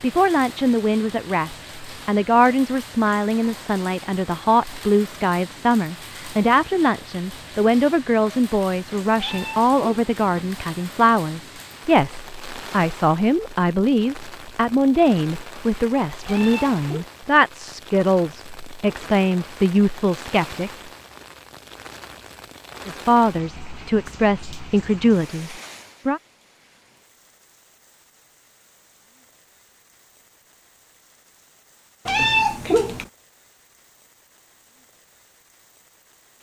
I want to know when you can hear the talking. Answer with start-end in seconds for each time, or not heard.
0.0-20.7, 22.9-26.2.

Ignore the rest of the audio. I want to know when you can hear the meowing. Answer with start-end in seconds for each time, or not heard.
9.2-10.6, 16.2-17.1, 32.0-33.0.